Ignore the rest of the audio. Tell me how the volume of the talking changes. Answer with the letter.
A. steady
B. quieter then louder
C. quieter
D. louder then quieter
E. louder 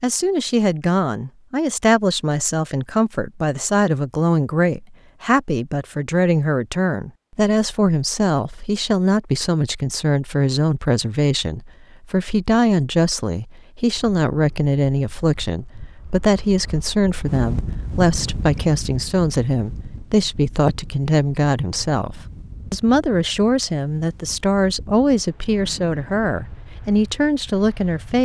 A.